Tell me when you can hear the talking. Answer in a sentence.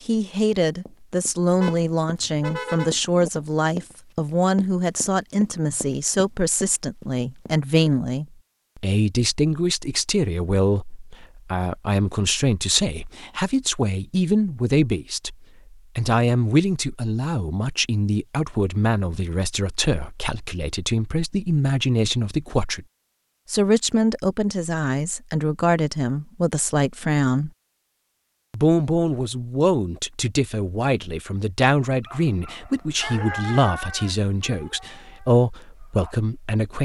The talking can be heard from 0.0 to 22.9 s, from 23.4 to 27.5 s and from 28.5 to 36.8 s.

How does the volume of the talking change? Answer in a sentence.
The volume of the talking stays about the same.